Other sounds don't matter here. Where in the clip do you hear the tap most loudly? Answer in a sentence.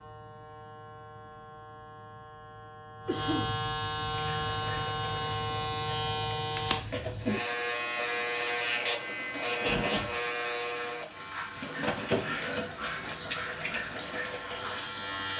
The loudest moment of the tap is at 12 seconds.